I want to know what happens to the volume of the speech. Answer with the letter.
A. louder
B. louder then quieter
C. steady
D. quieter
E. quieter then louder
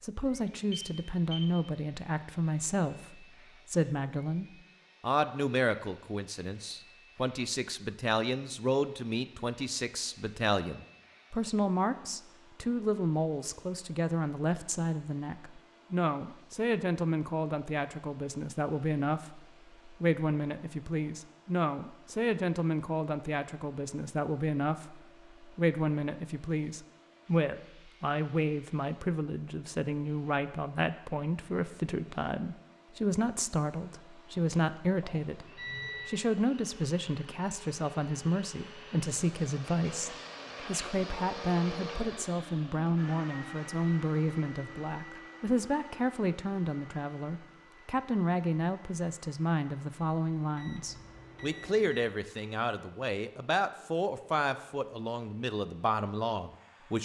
C.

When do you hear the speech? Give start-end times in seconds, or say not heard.
0.0-57.0.